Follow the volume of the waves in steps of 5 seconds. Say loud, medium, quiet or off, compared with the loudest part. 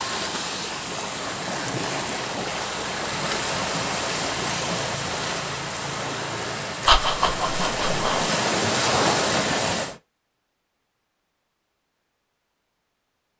loud, loud, off.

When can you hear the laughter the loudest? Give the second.
7 s.